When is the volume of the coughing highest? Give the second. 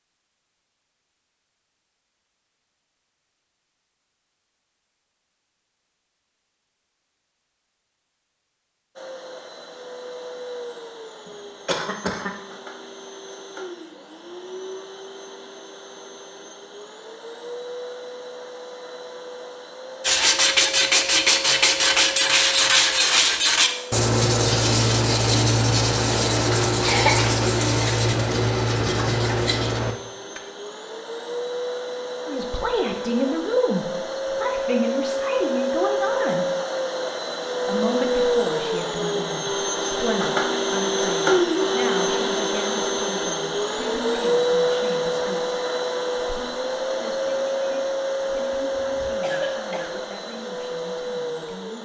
27 s.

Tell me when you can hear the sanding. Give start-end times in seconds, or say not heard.
20.0-30.4.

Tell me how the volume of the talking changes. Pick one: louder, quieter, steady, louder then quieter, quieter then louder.
quieter.